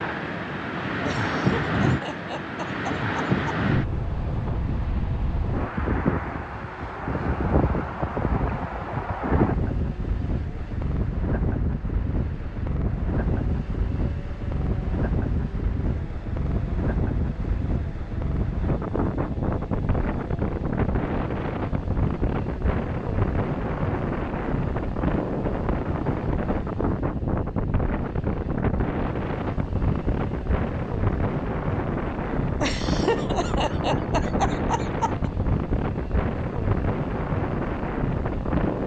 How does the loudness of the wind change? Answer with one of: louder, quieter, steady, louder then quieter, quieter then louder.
steady.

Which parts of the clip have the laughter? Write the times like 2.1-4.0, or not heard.
1.1-3.3, 32.6-35.3.